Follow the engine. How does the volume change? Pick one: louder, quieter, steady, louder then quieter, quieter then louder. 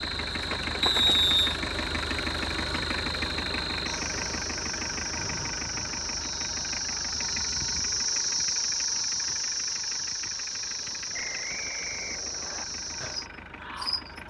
quieter.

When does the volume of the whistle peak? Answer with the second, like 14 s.
1 s.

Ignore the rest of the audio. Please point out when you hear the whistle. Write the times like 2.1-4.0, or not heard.
0.8-1.6, 5.2-6.8, 11.1-12.7.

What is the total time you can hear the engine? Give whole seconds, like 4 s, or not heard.
14 s.